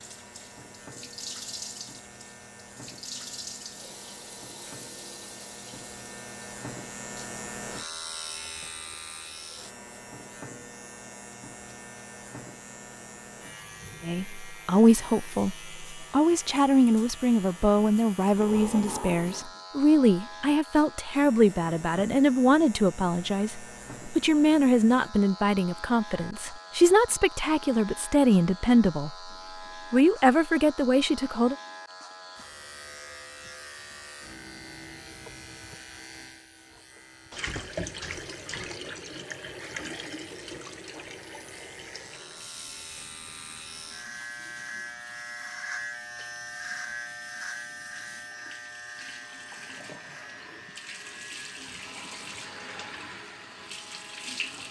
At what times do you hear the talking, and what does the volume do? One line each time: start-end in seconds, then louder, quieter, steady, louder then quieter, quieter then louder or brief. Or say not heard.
14.0-29.3 steady
29.9-31.6 brief.